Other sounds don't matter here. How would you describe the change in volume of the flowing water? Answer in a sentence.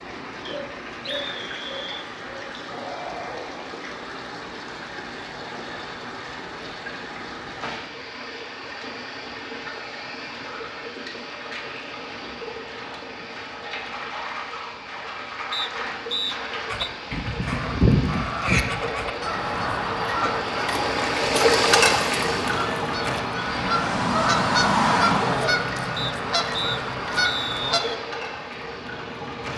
The volume of the flowing water goes up, then down.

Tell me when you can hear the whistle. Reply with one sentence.
The whistle can be heard from 0.5 to 2.0 s, from 15.5 to 16.9 s and from 25.9 to 27.9 s.